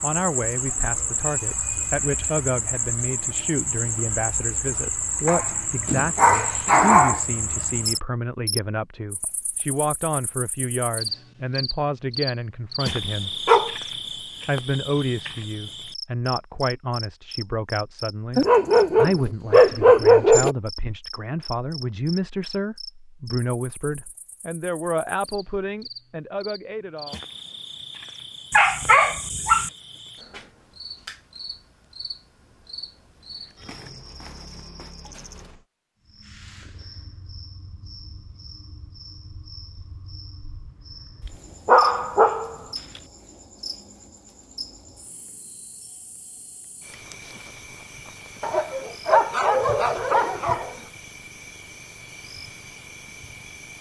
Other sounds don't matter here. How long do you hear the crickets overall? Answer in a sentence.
The crickets can be heard for 54 seconds in total.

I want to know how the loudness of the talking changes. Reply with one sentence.
The volume of the talking stays about the same.